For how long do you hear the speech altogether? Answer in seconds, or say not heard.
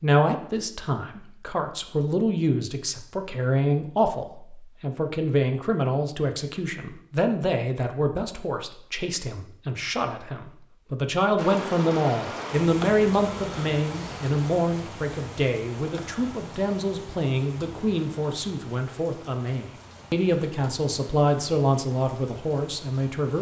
23 s.